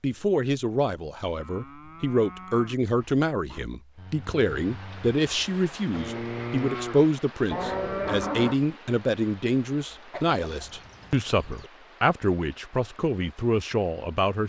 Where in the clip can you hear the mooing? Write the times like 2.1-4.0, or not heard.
1.3-8.6.